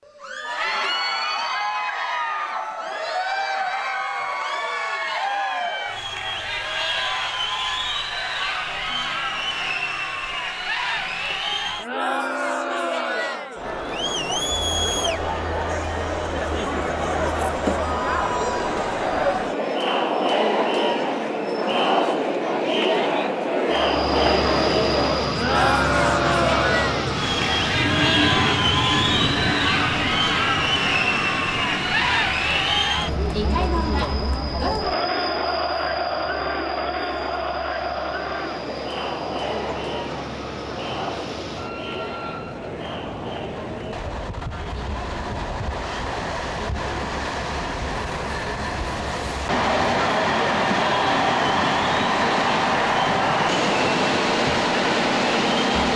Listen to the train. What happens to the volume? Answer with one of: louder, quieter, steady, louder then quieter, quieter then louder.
quieter then louder.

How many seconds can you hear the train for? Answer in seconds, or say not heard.
32 s.